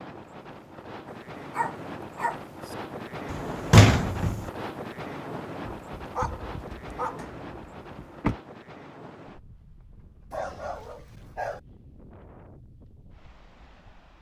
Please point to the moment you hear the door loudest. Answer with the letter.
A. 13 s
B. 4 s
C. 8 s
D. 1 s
B.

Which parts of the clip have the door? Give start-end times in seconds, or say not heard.
3.3-4.5, 7.2-8.3.